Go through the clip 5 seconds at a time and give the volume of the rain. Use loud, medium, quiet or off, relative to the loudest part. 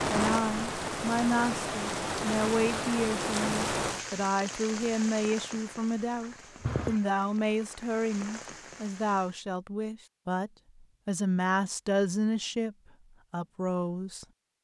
loud, medium, off.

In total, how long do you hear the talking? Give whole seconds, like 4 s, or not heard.
14 s.